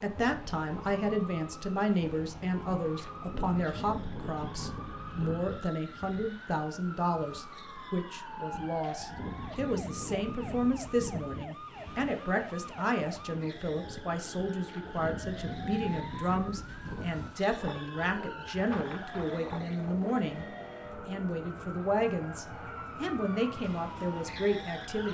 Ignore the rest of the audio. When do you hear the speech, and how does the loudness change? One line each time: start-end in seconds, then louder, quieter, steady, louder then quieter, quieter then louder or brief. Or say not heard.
0.0-25.1 steady.